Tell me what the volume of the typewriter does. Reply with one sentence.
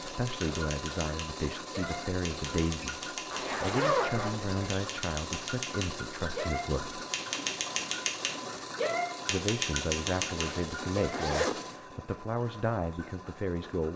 The volume of the typewriter goes up.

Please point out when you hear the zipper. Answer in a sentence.
The zipper can be heard from 3.3 to 4.7 s and from 10.3 to 11.8 s.